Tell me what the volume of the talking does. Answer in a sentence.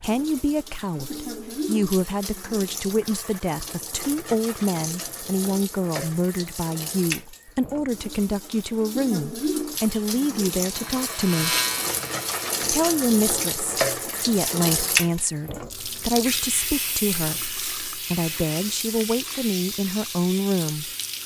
The volume of the talking stays about the same.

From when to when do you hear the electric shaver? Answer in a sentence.
The electric shaver can be heard from 10.7 to 12.5 s.